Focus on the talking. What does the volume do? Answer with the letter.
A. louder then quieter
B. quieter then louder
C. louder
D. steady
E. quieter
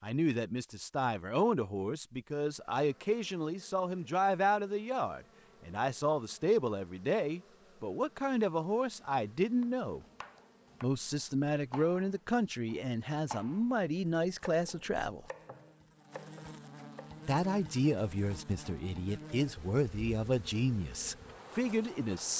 D.